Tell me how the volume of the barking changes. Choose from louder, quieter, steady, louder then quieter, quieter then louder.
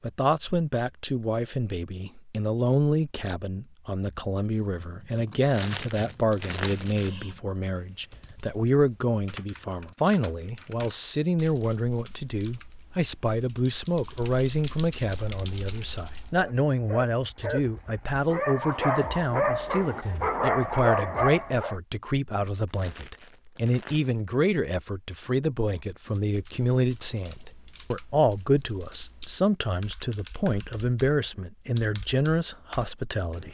louder.